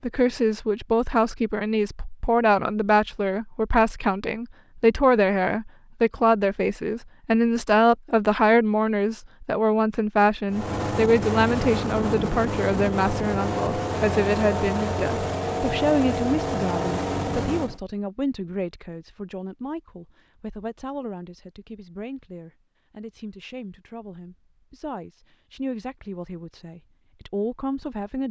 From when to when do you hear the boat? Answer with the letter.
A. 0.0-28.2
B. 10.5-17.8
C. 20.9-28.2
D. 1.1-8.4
B.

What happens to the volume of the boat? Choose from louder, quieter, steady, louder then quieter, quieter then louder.
steady.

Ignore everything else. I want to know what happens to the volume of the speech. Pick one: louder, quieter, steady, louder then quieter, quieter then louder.
quieter.